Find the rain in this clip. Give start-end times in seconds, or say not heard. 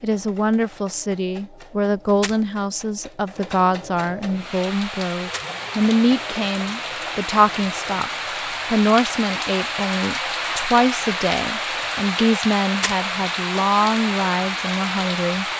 4.3-15.5.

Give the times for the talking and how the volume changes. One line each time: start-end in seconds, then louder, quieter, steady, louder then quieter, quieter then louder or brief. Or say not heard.
0.0-15.4 steady.